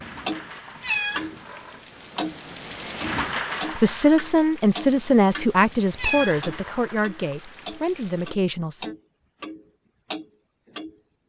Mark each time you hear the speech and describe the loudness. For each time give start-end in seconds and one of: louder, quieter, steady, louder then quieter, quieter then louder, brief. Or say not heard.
3.8-8.9 quieter.